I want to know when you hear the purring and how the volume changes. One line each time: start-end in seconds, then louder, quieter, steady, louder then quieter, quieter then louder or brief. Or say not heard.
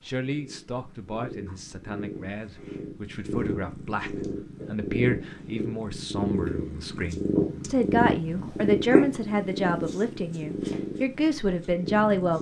0.2-12.3 louder then quieter.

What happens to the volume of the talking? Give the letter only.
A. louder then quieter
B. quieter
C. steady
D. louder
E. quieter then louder
D.